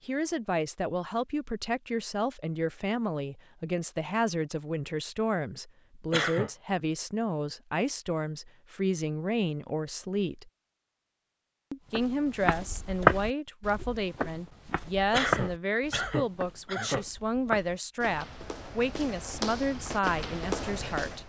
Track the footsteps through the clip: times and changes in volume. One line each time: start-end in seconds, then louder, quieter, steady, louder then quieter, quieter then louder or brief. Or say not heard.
11.9-21.2 quieter then louder.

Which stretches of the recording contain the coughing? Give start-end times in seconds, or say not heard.
6.1-6.5, 15.1-17.1.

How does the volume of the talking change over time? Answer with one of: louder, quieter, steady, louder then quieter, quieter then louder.
steady.